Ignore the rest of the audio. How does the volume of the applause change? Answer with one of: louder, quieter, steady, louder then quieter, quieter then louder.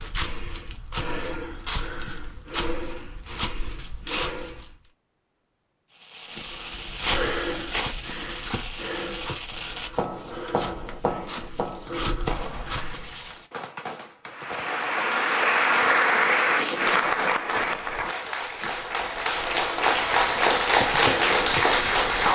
quieter then louder.